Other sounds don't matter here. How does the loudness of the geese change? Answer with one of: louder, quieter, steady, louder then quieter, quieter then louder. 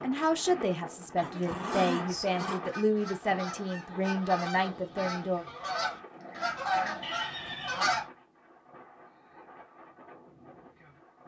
louder.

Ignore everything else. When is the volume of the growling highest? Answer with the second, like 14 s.
2 s.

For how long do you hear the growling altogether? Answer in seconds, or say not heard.
3 s.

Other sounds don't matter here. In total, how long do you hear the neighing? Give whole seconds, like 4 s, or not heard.
2 s.